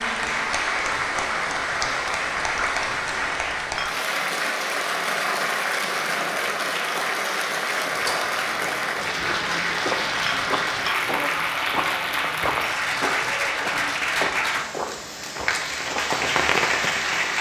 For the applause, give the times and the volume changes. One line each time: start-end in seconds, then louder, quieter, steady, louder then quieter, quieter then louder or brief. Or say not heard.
0.0-17.3 steady.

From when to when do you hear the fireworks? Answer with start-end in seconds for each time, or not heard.
15.6-17.3.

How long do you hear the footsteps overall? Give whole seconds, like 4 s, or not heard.
8 s.